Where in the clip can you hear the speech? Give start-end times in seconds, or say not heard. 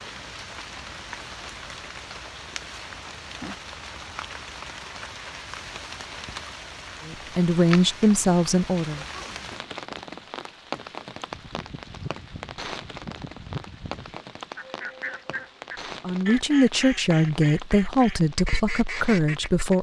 7.0-9.1, 16.0-19.7.